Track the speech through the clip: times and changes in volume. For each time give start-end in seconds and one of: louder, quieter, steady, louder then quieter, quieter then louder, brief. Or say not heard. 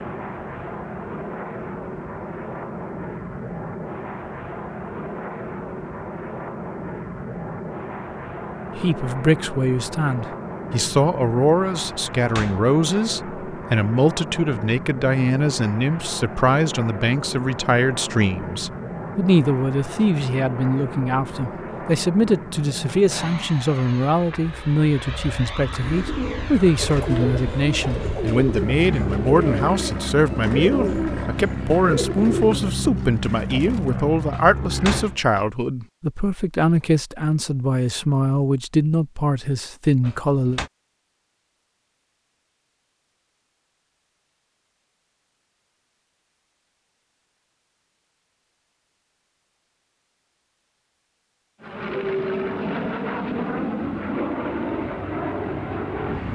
8.8-40.6 steady.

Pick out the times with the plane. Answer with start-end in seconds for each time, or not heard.
0.0-35.2, 51.6-56.3.